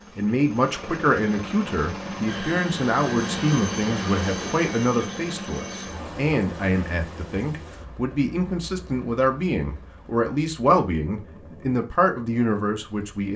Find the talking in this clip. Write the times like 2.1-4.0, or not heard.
0.1-13.3.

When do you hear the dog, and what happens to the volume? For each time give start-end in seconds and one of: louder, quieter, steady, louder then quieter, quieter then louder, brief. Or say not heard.
not heard.